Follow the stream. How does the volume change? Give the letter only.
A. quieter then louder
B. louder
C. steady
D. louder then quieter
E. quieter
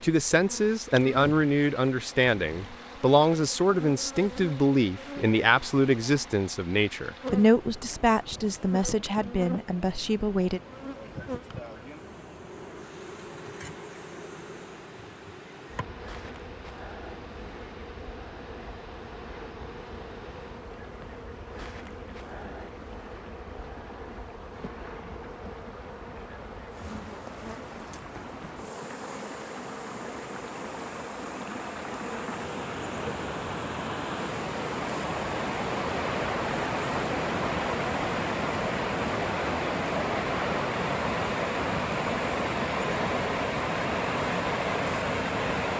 B.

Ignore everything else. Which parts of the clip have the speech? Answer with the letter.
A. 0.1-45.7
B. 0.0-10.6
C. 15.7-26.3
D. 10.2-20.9
B.